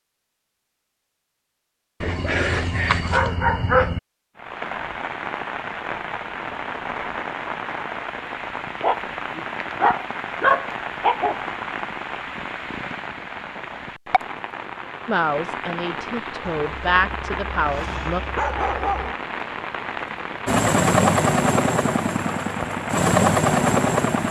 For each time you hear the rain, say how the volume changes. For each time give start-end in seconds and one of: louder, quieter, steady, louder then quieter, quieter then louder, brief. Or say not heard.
4.3-24.2 steady.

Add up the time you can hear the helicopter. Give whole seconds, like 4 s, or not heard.
4 s.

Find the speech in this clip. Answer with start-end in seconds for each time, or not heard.
15.1-18.2.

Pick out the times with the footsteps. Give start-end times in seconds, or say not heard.
not heard.